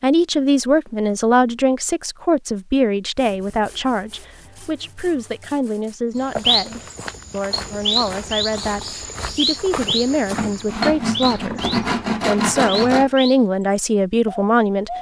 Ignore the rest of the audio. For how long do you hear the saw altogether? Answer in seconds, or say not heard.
6 s.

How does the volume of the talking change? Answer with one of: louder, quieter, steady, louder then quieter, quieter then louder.
quieter then louder.